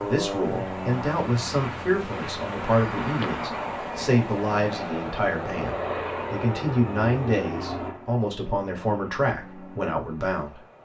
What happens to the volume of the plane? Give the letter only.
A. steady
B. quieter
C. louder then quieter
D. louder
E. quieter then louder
B.